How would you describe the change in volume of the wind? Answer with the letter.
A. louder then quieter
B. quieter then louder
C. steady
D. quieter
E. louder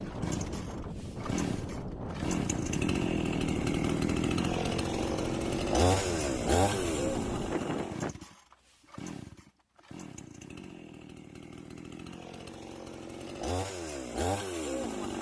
C.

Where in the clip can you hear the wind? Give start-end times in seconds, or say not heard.
0.0-8.2.